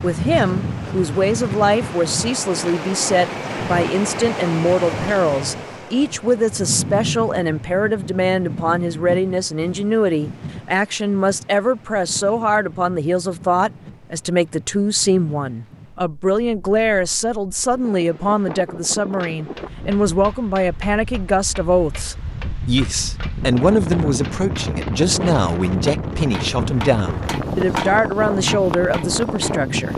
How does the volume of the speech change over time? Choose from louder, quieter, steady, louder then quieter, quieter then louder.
steady.